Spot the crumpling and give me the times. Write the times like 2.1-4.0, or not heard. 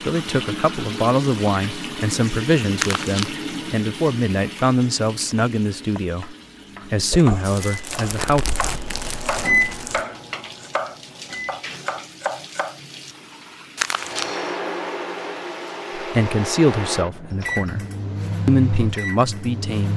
2.8-3.3, 7.4-10.1, 13.8-14.3.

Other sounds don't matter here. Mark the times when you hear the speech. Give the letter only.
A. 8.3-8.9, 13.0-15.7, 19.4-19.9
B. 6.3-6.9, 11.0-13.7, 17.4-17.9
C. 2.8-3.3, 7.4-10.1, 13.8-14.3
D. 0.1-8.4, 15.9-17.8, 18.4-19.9
D.